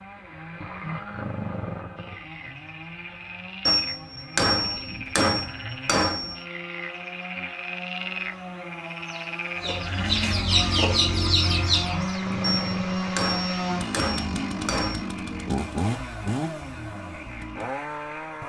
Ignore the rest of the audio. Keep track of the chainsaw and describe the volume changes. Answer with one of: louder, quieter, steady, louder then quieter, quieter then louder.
louder.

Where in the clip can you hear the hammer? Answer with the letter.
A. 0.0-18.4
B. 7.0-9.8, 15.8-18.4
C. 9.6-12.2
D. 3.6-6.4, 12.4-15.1
D.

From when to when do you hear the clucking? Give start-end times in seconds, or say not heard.
9.6-12.2.